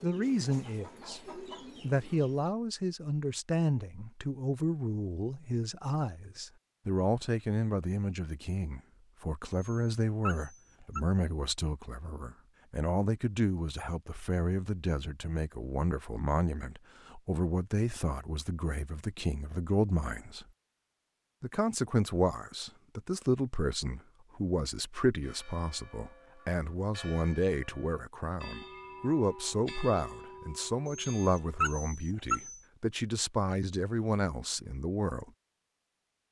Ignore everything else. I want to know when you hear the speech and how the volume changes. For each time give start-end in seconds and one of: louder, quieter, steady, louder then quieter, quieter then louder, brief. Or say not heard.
0.0-20.4 steady
21.4-35.3 steady.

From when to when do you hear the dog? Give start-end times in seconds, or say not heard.
9.5-11.0, 30.9-32.6.